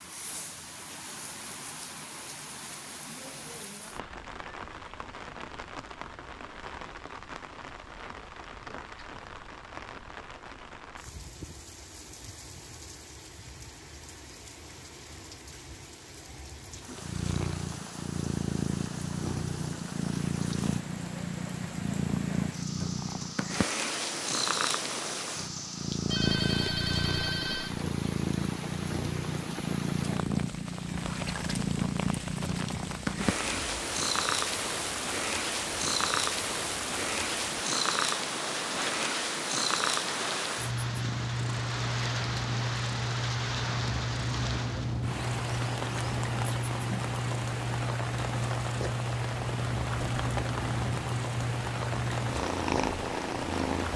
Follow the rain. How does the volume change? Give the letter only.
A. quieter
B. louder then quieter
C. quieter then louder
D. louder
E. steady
D.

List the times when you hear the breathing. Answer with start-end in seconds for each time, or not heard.
not heard.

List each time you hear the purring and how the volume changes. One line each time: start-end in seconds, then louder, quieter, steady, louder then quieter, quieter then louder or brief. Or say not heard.
16.9-53.9 steady.